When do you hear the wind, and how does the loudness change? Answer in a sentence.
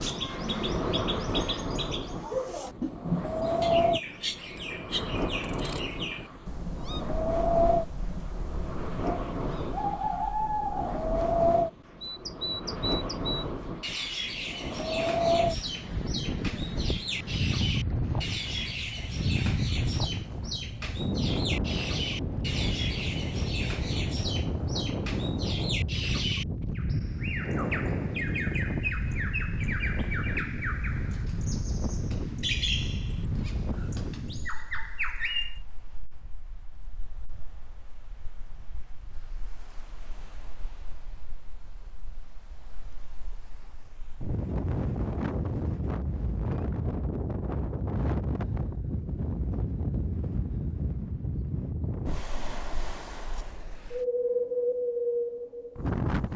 The wind can be heard from 0.0 to 56.3 s, getting quieter then louder.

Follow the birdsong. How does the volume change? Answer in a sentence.
The volume of the birdsong stays about the same.